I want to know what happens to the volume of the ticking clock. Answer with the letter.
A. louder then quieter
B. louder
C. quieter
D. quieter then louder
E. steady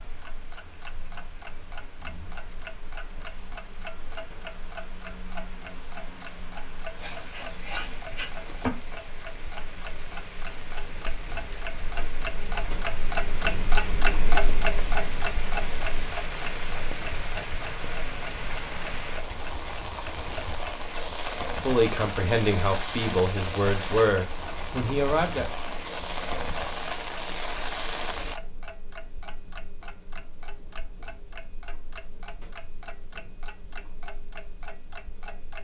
A.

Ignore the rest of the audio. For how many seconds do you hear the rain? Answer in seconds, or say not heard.
28 s.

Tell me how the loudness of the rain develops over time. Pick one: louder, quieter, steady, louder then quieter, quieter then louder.
louder.